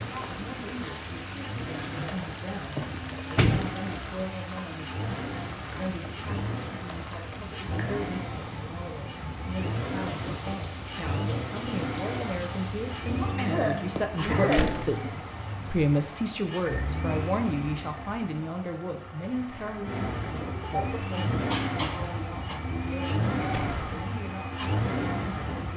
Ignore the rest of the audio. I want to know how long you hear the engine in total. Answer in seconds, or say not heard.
26 s.